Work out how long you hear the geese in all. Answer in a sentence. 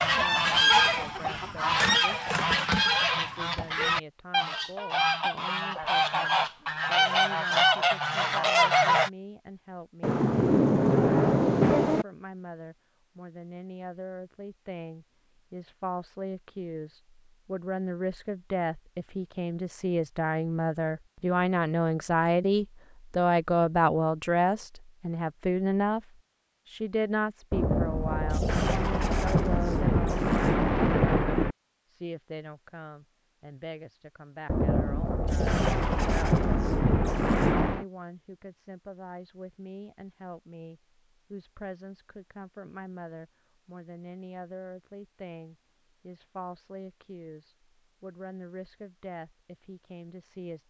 You can hear the geese for 9 seconds altogether.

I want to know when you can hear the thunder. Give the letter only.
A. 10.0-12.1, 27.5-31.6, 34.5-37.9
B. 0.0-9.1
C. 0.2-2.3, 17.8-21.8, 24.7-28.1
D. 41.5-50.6
A.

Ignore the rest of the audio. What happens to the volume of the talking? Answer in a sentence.
The loudness of the talking goes up, then down.